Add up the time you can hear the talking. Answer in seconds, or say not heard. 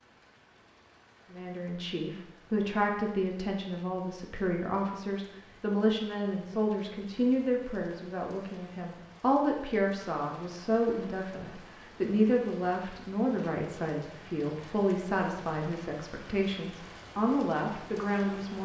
17 s.